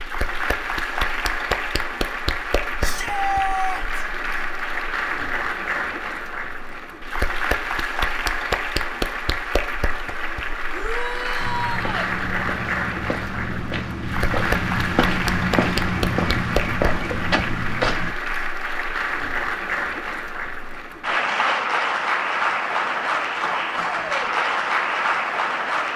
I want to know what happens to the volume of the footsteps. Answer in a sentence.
The loudness of the footsteps goes up.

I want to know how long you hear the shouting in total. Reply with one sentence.
You can hear the shouting for 3 seconds altogether.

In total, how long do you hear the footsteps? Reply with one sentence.
You can hear the footsteps for 7 seconds altogether.